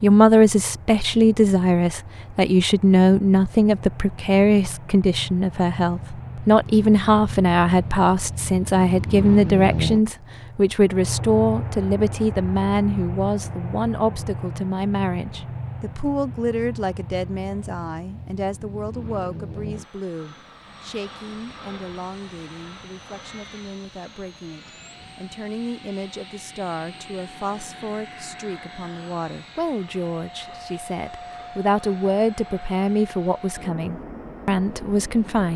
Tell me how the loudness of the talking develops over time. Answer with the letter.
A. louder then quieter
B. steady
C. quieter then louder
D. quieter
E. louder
C.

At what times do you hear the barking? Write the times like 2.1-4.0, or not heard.
not heard.